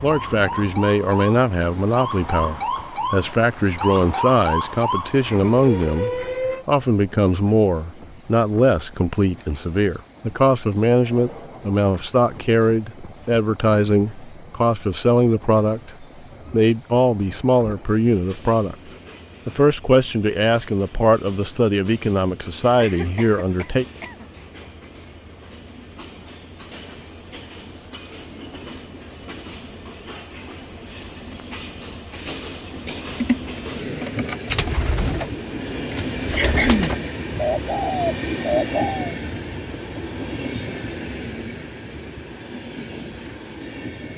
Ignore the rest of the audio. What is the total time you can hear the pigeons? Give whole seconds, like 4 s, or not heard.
6 s.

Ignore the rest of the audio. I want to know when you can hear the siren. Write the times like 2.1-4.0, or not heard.
0.0-6.7.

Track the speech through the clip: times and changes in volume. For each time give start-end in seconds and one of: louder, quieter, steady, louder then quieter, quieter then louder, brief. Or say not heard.
0.0-23.9 steady.